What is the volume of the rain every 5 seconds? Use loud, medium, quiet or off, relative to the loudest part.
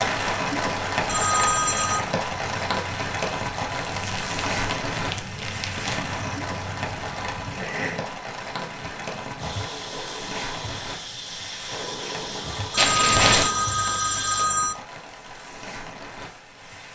loud, medium, medium, quiet.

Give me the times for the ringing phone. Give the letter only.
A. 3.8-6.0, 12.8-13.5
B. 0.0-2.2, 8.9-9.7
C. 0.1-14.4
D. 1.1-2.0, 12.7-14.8
D.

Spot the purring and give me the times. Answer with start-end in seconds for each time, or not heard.
0.1-14.4.